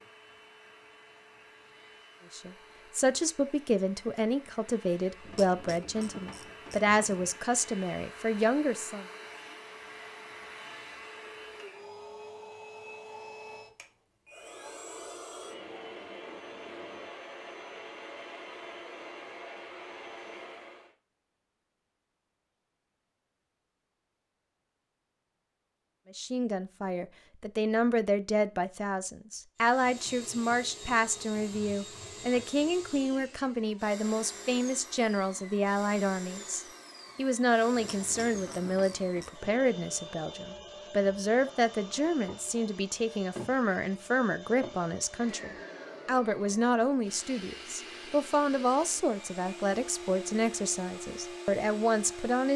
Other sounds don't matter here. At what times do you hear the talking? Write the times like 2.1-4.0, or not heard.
2.3-9.1, 26.1-52.5.